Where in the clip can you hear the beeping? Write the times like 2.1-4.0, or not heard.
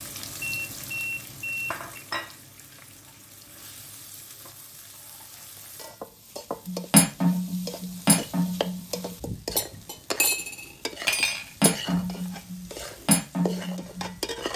0.4-1.9.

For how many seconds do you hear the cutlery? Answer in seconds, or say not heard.
8 s.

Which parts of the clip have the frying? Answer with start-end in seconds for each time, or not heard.
0.0-14.5.